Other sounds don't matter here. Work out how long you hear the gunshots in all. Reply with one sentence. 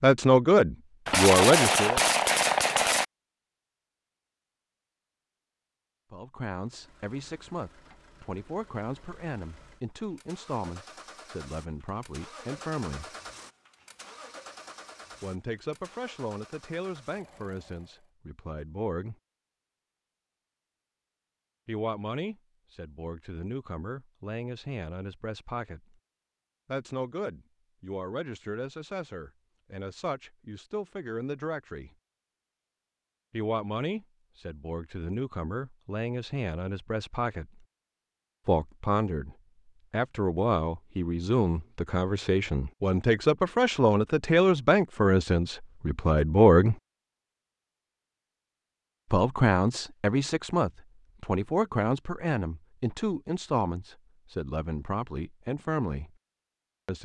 You can hear the gunshots for 2 seconds altogether.